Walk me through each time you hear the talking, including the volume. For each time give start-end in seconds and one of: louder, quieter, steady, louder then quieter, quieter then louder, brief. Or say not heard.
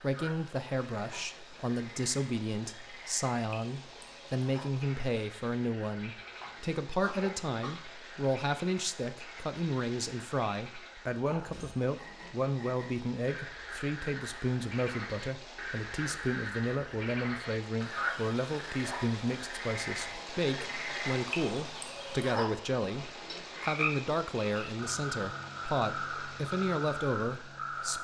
0.0-27.9 steady.